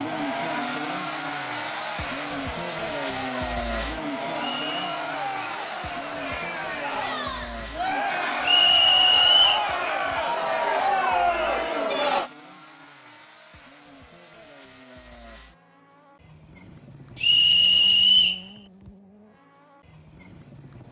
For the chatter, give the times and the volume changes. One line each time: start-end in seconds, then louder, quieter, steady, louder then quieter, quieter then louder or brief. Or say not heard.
0.1-12.3 louder.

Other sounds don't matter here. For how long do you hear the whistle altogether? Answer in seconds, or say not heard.
3 s.